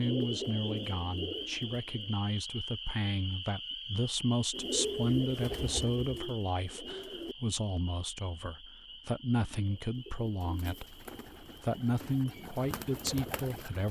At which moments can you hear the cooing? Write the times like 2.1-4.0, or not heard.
0.0-2.1, 4.5-7.3, 9.6-13.8.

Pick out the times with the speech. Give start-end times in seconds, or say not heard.
0.0-13.8.